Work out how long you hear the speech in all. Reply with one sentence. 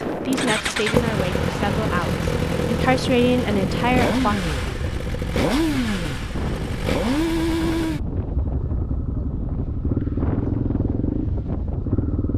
The speech can be heard for 4 seconds in total.